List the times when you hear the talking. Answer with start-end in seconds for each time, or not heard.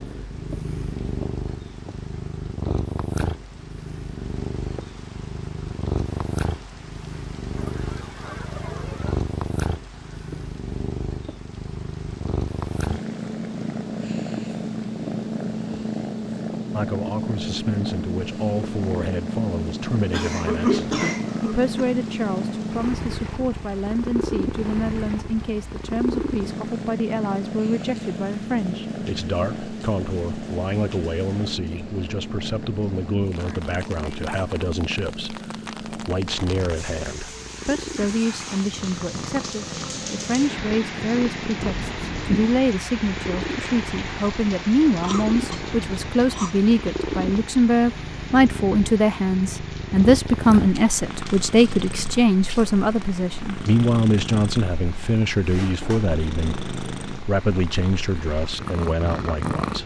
16.7-59.8.